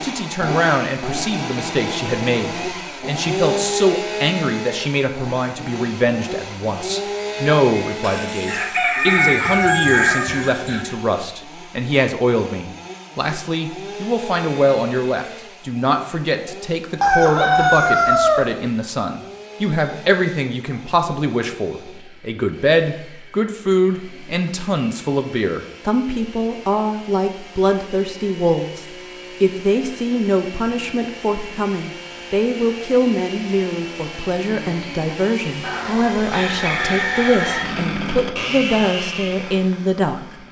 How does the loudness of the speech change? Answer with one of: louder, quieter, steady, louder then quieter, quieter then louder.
steady.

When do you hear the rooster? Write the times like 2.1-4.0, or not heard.
8.0-10.8, 17.0-18.4, 35.6-37.6.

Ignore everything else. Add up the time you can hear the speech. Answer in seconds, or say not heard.
40 s.